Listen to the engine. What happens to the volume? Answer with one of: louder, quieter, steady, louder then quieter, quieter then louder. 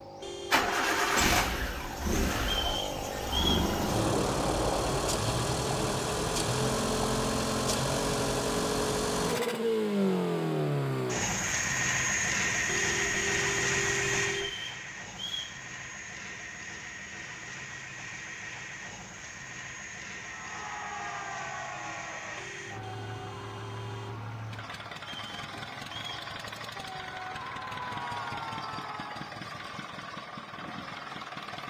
quieter.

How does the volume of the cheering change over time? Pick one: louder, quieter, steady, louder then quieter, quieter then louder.
quieter then louder.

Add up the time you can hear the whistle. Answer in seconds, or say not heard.
4 s.